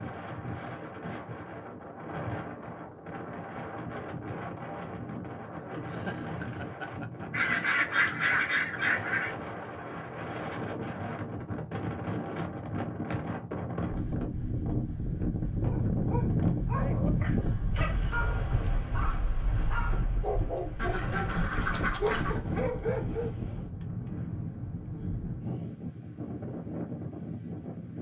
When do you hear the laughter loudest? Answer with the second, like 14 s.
6 s.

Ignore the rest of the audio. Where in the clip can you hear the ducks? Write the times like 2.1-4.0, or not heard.
7.3-9.3, 20.8-22.4.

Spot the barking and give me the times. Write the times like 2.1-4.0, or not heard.
15.7-21.4, 22.0-23.4.